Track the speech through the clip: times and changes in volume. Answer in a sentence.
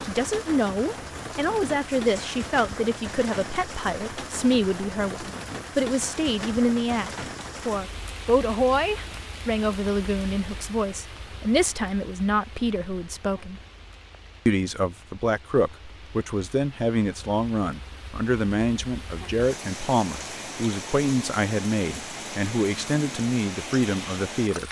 You can hear the speech from 0.0 to 13.6 s, at a steady volume; and from 14.4 to 24.6 s, at a steady volume.